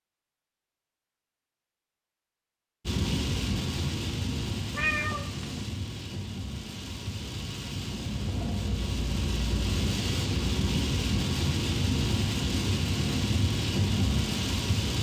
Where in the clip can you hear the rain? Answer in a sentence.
You can hear the rain from 2.9 to 14.9 s.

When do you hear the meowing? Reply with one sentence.
You can hear the meowing from 4.7 to 5.7 s.